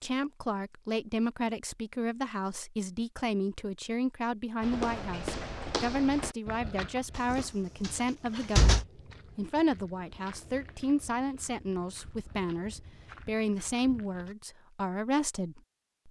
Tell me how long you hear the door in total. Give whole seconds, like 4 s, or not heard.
2 s.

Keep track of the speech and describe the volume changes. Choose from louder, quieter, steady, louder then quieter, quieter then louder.
steady.